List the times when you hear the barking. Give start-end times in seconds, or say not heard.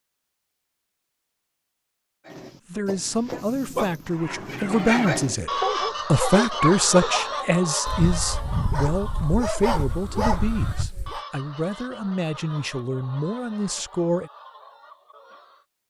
2.2-11.2.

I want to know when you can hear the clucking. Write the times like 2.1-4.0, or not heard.
4.0-15.7.